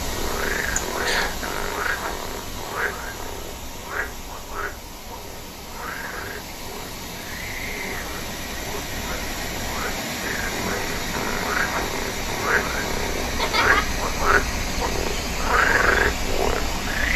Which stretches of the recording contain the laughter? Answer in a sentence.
You can hear the laughter from 0.8 to 1.4 s and from 13.2 to 13.9 s.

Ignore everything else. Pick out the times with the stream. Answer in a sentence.
The stream can be heard from 0.0 to 17.1 s.